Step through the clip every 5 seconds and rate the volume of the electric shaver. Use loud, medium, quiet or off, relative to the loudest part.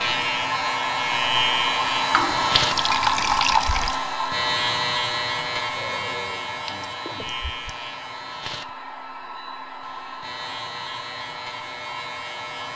loud, medium, medium.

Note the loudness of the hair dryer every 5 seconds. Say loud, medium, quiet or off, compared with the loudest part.
loud, medium, medium.